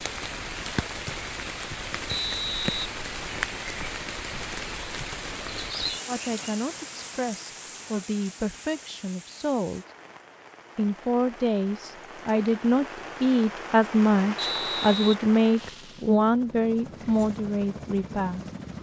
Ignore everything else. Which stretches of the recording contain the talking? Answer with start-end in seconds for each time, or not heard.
6.0-9.8, 10.8-18.4.